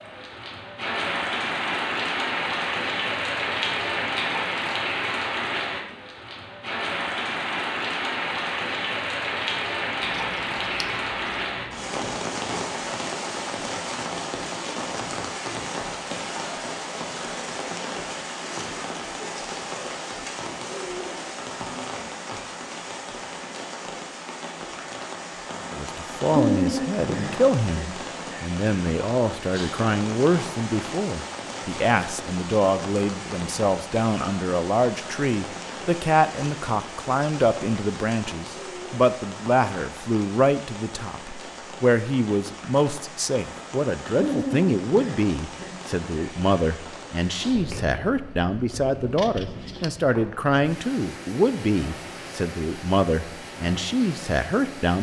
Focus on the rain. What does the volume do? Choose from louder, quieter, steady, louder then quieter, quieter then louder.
quieter.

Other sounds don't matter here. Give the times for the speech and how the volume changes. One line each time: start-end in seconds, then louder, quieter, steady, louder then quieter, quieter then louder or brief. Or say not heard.
25.7-54.9 steady.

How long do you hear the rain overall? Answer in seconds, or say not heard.
55 s.